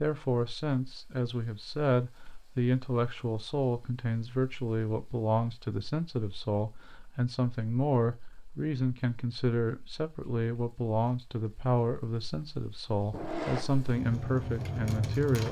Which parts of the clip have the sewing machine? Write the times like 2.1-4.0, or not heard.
13.1-15.2.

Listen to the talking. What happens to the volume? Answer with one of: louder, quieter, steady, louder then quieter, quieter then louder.
steady.